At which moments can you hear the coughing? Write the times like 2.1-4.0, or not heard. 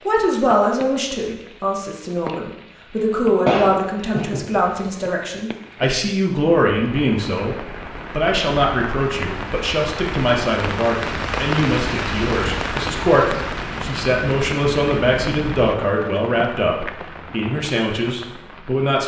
3.5-4.8.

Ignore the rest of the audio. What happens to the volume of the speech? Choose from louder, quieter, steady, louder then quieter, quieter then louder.
steady.